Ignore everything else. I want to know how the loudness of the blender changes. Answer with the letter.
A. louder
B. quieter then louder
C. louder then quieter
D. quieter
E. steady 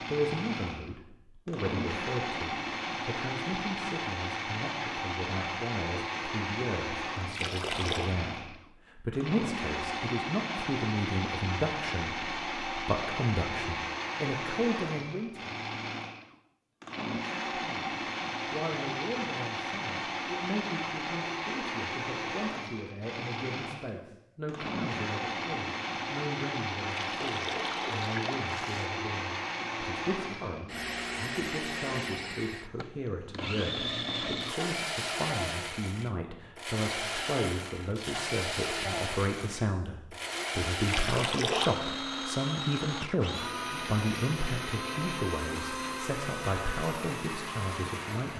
E.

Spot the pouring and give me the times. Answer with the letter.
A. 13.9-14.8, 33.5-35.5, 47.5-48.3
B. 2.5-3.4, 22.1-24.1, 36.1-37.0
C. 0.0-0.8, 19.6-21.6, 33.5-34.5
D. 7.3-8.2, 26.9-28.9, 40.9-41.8
D.